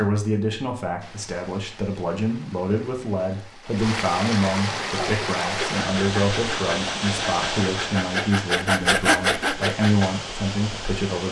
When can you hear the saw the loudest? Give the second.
9 s.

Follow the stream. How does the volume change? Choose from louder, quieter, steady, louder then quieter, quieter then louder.
louder then quieter.